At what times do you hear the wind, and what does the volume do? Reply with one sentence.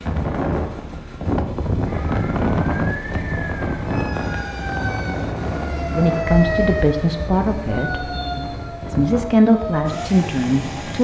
The wind can be heard from 0.0 to 10.9 s, getting quieter.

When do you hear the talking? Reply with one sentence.
The talking can be heard from 5.8 to 10.9 s.